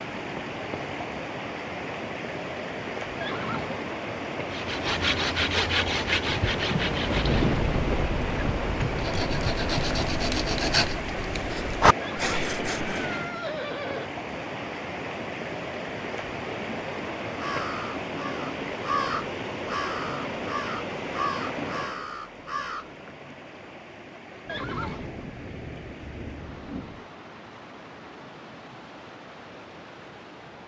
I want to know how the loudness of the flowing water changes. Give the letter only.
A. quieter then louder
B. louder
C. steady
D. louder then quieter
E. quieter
E.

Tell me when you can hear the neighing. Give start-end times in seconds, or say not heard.
3.2-3.9, 12.0-14.1, 24.4-25.1.